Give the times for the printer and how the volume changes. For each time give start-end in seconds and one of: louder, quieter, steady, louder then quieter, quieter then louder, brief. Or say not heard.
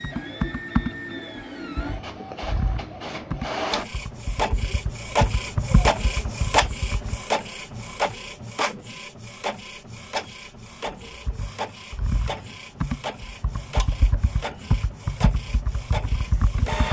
0.0-16.8 louder then quieter.